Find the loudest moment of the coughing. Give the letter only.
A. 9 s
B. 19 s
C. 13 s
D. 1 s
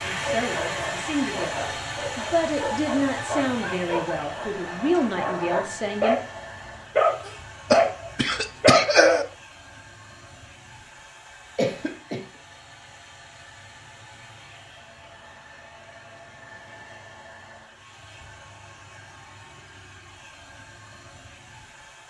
A.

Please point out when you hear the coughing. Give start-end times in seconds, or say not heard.
7.2-9.2, 11.6-12.2.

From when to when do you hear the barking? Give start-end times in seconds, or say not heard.
0.1-9.2.